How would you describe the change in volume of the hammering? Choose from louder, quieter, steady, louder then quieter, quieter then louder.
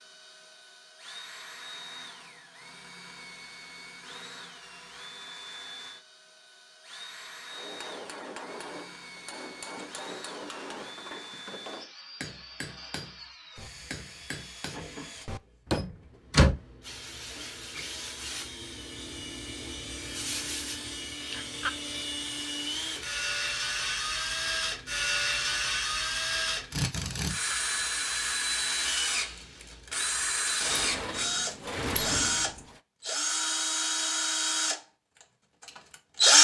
steady.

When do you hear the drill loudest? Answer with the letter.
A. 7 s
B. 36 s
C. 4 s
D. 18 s
B.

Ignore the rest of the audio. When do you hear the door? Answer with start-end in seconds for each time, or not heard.
15.8-16.6, 30.6-32.5.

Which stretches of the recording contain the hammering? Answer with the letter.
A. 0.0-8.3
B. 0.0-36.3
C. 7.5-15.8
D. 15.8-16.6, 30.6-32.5
C.